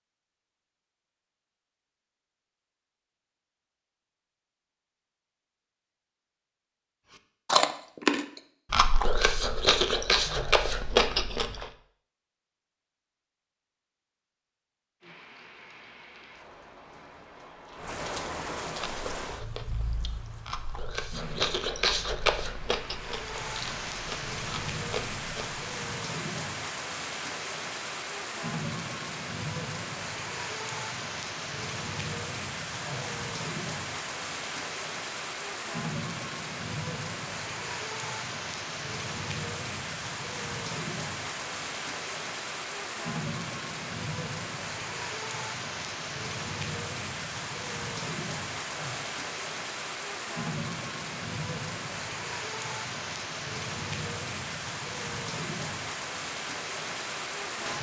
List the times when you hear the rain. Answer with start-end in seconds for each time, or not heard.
15.0-57.7.